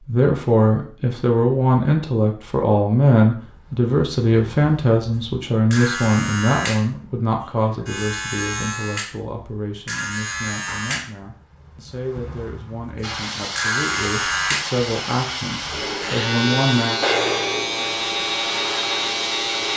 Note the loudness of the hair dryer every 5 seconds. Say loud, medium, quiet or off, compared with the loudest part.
off, off, loud, loud.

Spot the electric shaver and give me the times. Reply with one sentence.
The electric shaver can be heard from 3.6 to 19.7 s.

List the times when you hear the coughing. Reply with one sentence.
The coughing can't be heard in this clip.